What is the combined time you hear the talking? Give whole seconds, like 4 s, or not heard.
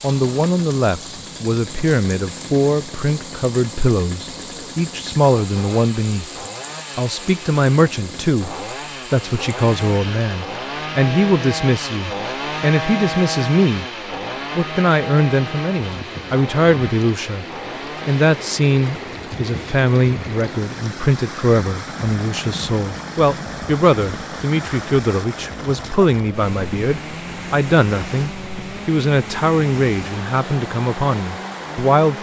30 s.